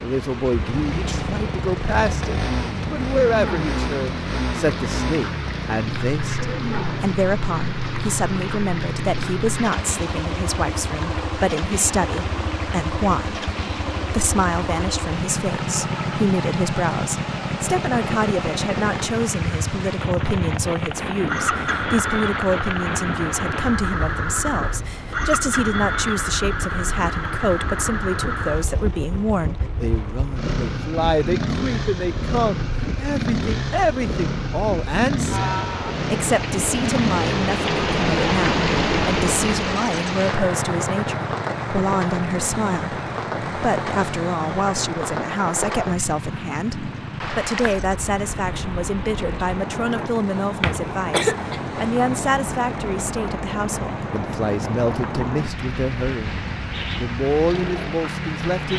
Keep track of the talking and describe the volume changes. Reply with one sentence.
The volume of the talking stays about the same.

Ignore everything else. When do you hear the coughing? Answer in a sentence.
You can hear the coughing from 50.6 to 51.6 s.